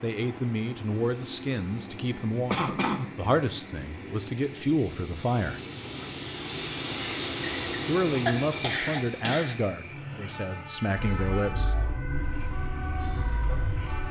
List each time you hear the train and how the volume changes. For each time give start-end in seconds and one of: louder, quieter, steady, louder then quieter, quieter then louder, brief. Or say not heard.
0.0-14.0 louder then quieter.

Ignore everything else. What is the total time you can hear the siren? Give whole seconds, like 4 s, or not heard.
3 s.